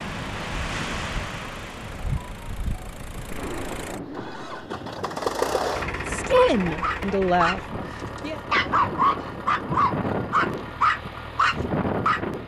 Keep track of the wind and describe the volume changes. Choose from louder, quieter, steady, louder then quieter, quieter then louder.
quieter then louder.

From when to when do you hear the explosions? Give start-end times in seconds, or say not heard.
3.3-4.7.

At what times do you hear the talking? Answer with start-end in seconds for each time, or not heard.
6.1-8.4.